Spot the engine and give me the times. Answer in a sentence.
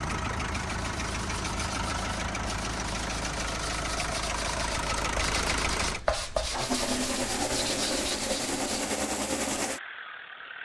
You can hear the engine from 0.0 to 10.6 s.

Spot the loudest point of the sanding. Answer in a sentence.
The loudest moment of the sanding is at 6 seconds.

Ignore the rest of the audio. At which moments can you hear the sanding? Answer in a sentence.
You can hear the sanding from 0.6 to 8.9 s.